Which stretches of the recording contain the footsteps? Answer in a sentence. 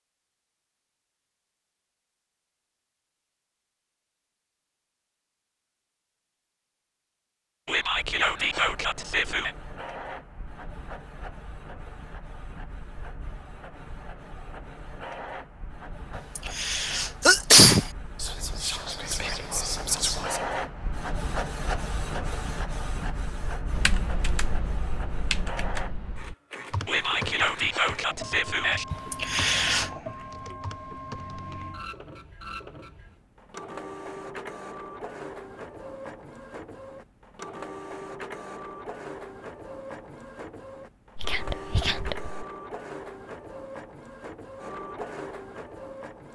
You can't hear the footsteps here.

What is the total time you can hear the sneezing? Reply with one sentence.
The sneezing can be heard for 3 seconds in total.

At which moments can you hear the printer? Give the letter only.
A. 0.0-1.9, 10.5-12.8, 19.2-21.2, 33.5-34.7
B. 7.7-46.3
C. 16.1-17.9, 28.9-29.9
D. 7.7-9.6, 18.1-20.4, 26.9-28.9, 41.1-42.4
B.